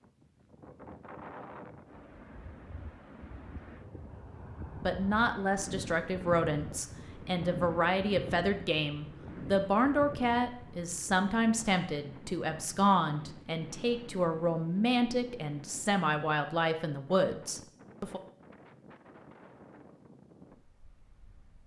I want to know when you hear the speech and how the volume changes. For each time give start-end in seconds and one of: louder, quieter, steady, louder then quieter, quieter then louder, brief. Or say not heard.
4.8-18.2 steady.